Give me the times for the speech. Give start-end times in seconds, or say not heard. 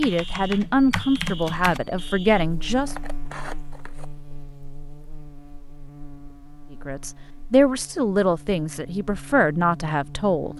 0.0-3.0, 6.7-10.5.